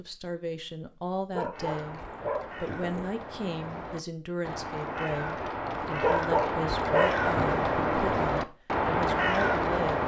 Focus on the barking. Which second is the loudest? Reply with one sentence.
The volume of the barking peaks at 6 seconds.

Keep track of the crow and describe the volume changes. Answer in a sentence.
The loudness of the crow goes up.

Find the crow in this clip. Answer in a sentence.
The crow can be heard from 1.5 to 10.0 s.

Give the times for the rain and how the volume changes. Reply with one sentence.
The rain can't be heard in this clip.